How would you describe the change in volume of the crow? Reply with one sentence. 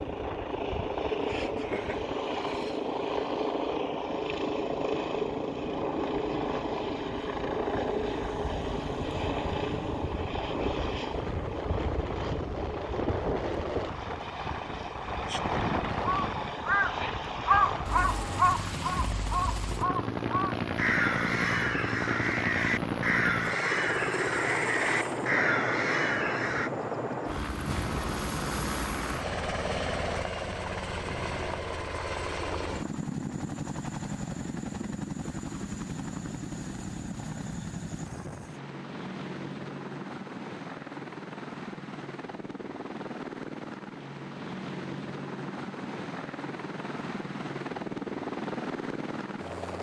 The volume of the crow stays about the same.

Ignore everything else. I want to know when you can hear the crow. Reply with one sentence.
You can hear the crow from 16.0 to 26.7 s.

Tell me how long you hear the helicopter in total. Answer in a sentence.
The helicopter can be heard for 50 seconds in total.